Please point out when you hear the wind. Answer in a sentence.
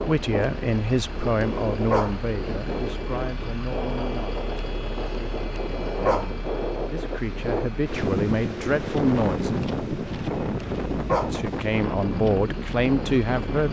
You can hear the wind from 0.0 to 13.6 s.